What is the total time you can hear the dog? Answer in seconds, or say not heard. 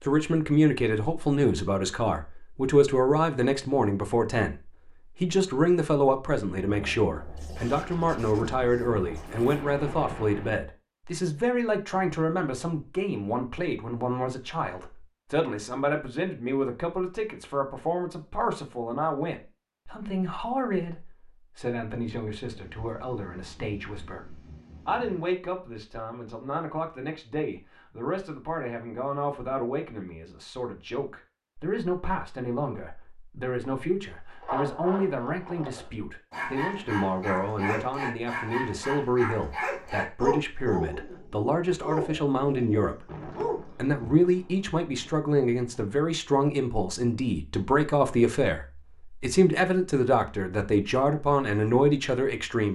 10 s.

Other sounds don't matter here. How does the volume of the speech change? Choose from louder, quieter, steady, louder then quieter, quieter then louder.
quieter then louder.